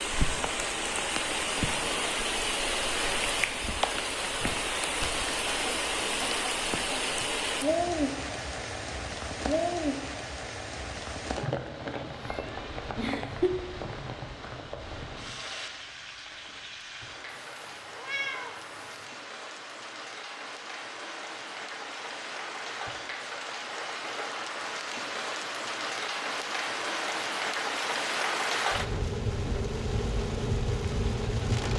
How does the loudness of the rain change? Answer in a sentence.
The volume of the rain goes down, then up.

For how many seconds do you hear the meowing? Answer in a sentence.
The meowing can be heard for 3 seconds in total.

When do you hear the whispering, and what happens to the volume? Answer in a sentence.
The whispering can't be heard in this clip.